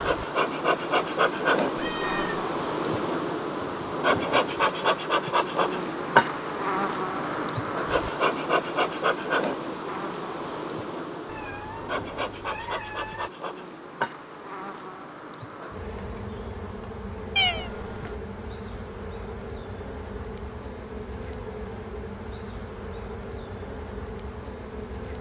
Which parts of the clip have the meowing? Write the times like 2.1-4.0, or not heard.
1.8-2.4, 11.2-13.3, 17.4-18.1.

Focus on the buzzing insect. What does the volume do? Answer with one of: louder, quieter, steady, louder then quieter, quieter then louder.
quieter.